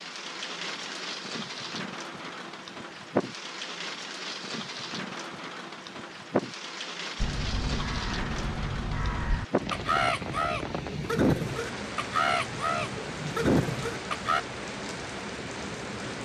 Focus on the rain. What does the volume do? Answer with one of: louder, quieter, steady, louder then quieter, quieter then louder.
steady.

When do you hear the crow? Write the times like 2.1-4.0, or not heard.
7.2-14.4.